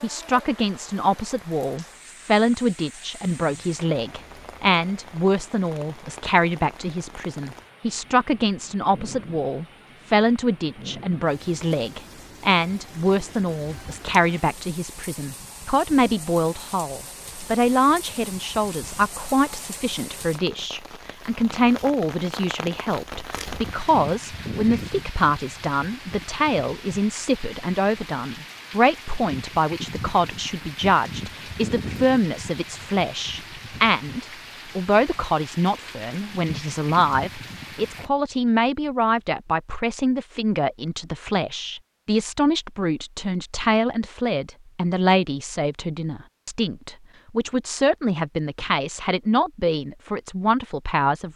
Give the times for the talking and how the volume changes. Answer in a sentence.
You can hear the talking from 0.0 to 51.3 s, at a steady volume.